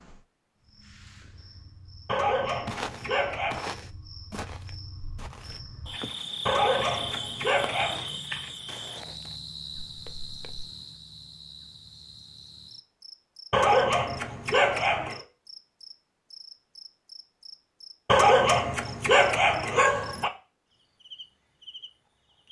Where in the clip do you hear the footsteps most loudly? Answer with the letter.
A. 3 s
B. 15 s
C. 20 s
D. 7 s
A.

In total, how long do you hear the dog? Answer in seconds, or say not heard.
7 s.